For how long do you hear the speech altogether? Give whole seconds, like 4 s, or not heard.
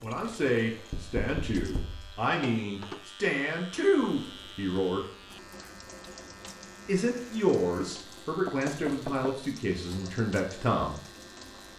9 s.